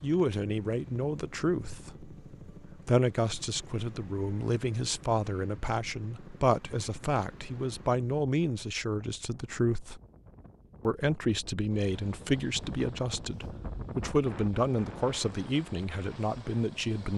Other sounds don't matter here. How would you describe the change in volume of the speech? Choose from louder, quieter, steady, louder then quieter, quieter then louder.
steady.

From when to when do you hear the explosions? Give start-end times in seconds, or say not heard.
not heard.